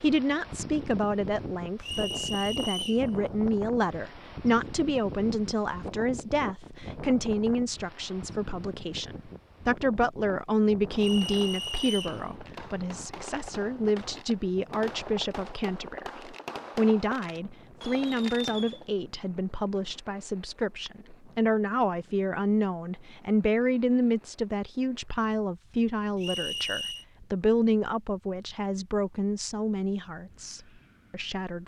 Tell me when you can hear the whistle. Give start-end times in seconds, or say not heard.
1.8-3.0, 10.9-12.2, 26.1-27.1.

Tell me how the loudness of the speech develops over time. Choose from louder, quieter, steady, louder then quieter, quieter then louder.
steady.